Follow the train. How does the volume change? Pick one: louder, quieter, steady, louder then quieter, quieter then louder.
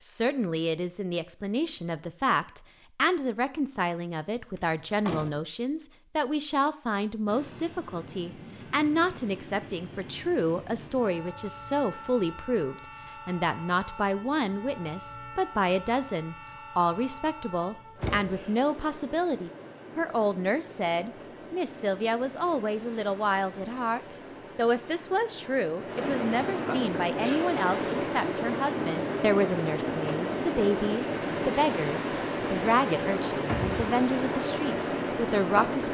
louder.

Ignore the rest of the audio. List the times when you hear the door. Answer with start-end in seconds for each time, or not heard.
4.5-5.4, 17.9-18.4, 33.5-33.9.